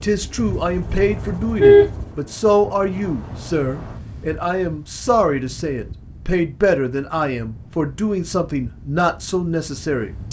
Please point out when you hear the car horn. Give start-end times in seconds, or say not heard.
0.3-1.9.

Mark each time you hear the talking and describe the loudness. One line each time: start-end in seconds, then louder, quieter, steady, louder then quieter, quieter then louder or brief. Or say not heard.
0.0-10.2 steady.